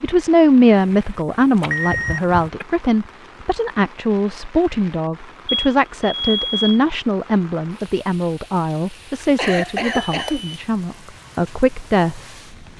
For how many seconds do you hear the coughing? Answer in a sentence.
The coughing can be heard for 2 seconds in total.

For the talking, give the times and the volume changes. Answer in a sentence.
The talking can be heard from 0.0 to 12.2 s, getting quieter.